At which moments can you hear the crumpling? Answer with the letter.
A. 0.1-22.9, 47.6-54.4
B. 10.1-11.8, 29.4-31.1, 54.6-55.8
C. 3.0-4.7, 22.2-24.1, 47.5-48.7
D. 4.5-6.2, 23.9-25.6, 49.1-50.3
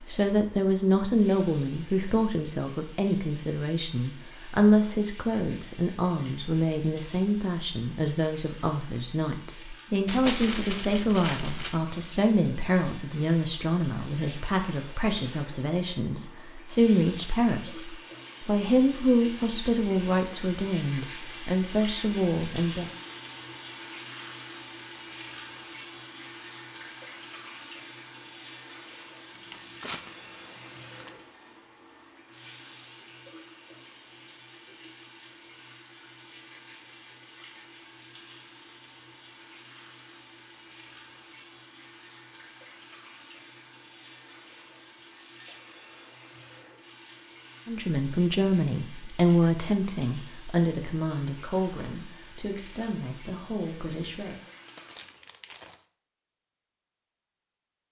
B.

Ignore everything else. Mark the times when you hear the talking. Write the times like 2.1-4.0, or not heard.
0.1-22.9, 47.6-54.4.